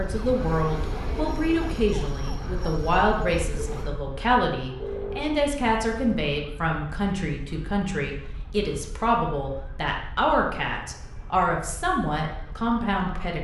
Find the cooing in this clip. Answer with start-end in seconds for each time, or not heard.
not heard.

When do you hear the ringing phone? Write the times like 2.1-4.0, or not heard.
4.7-5.3.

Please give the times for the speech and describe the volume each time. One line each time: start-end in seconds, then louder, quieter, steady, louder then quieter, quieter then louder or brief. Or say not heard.
0.0-13.3 steady.